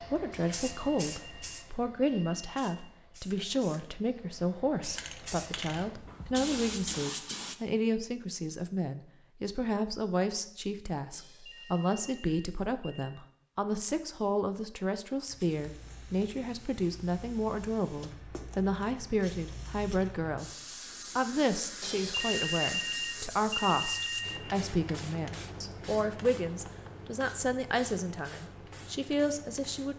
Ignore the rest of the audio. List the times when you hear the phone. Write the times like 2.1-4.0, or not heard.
0.3-2.6, 11.1-13.2, 21.8-24.4.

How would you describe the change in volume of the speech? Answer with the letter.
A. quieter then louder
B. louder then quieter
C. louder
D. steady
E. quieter
D.